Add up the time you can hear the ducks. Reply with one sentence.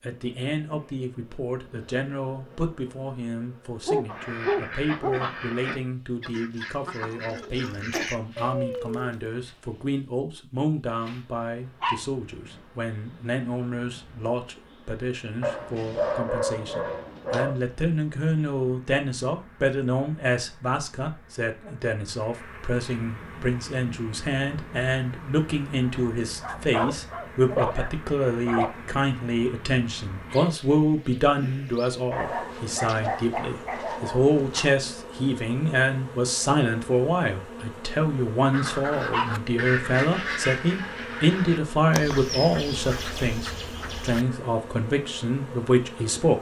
You can hear the ducks for 11 seconds altogether.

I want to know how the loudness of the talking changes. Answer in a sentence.
The volume of the talking goes up.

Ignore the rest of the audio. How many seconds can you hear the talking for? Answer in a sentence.
You can hear the talking for 46 seconds altogether.